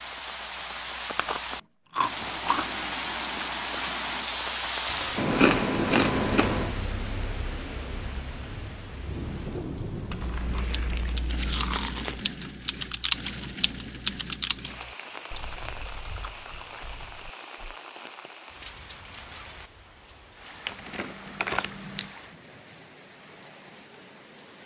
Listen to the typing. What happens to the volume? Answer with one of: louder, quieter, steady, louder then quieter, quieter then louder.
louder then quieter.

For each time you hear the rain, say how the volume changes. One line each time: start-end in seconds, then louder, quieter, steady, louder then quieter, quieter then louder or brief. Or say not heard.
0.0-24.6 quieter.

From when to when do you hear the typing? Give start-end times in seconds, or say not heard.
9.9-17.8.